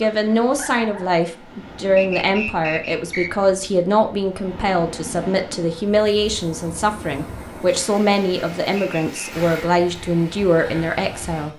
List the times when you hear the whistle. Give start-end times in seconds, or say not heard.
1.9-3.5, 8.8-9.2.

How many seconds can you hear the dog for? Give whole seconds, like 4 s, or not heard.
not heard.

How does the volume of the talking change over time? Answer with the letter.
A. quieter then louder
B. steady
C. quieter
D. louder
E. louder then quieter
B.